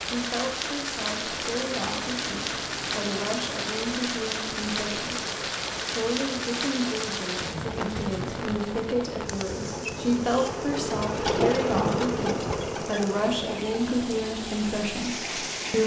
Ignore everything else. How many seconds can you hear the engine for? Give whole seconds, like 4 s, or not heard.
16 s.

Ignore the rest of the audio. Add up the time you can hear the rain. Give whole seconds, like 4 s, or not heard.
16 s.